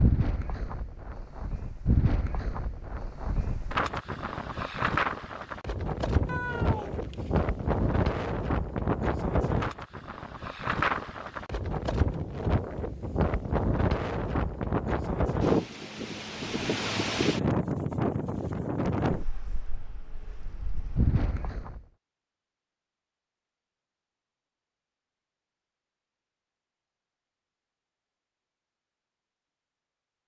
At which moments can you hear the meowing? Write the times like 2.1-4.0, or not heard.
6.2-8.1.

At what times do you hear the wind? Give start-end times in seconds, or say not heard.
0.0-21.9.